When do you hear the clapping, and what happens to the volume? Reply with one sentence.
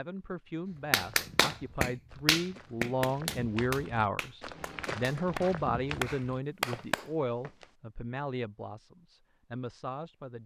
You can hear the clapping from 0.9 to 7.0 s, getting quieter then louder.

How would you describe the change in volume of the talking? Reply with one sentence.
The loudness of the talking goes up, then down.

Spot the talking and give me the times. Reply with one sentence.
You can hear the talking from 0.0 to 10.4 s.